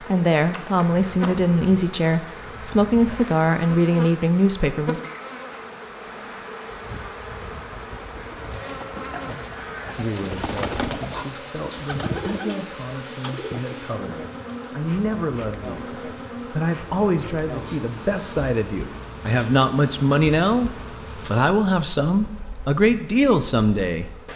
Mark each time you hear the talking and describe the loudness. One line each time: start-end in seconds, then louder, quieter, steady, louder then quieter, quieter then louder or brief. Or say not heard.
0.1-5.0 steady
9.9-24.1 louder.